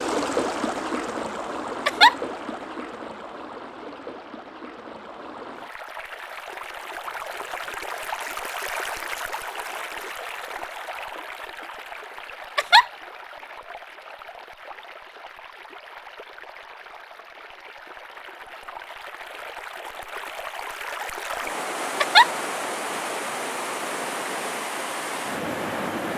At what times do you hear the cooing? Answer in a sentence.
The cooing can't be heard in this clip.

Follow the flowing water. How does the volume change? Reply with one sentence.
The loudness of the flowing water goes down, then up.